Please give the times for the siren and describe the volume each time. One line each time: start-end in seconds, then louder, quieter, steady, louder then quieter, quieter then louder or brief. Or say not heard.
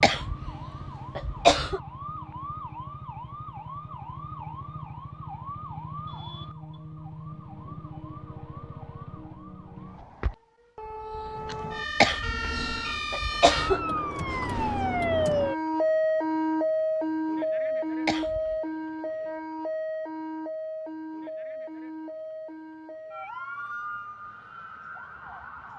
0.0-25.7 louder then quieter.